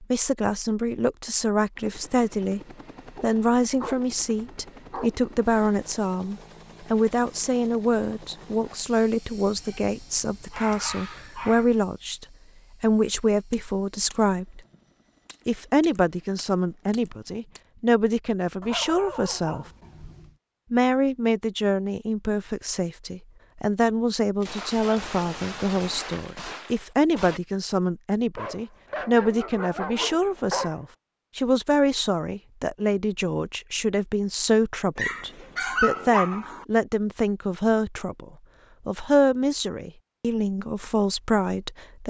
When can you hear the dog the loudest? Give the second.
36 s.